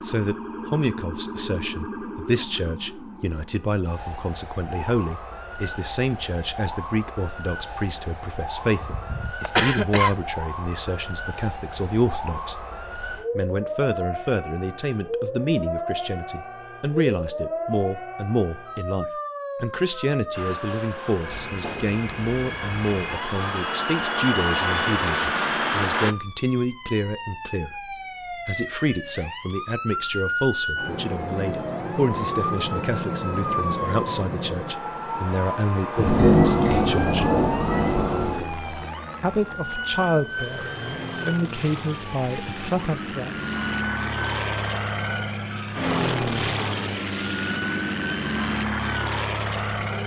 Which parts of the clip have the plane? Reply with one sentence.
You can hear the plane from 20.3 to 26.1 s and from 37.7 to 50.0 s.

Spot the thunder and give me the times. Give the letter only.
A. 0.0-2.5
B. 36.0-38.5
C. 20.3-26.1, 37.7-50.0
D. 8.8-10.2
B.